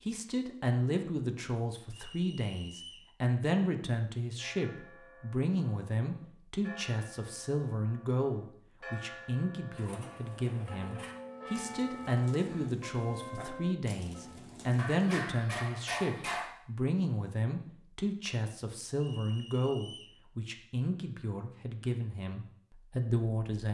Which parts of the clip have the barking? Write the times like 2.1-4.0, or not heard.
14.8-16.6.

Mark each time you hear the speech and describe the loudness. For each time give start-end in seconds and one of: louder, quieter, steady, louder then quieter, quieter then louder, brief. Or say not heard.
0.1-23.6 steady.